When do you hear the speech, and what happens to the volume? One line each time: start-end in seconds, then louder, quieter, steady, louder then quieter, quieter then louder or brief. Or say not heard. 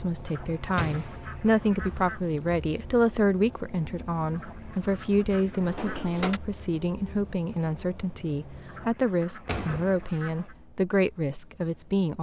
0.0-12.1 steady.